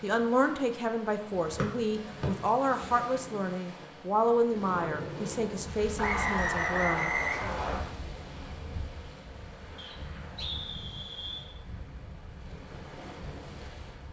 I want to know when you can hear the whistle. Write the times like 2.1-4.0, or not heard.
1.6-2.3, 6.0-7.8, 9.8-11.5.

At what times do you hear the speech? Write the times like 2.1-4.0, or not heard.
0.0-7.2.